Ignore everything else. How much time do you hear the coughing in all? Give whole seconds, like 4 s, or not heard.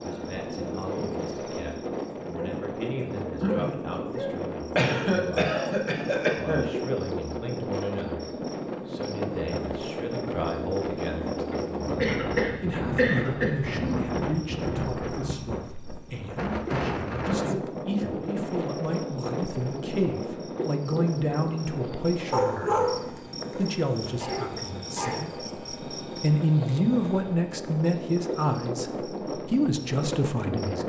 5 s.